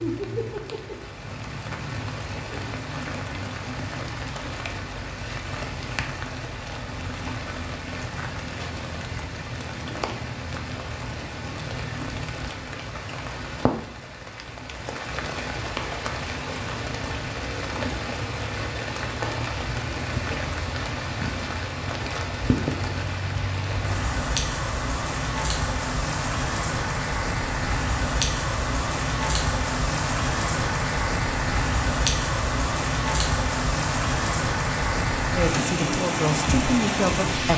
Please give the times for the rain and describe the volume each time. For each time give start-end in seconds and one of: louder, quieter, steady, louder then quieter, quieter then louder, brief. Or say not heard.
0.0-37.5 louder.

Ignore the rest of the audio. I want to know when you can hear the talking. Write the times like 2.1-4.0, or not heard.
35.3-37.5.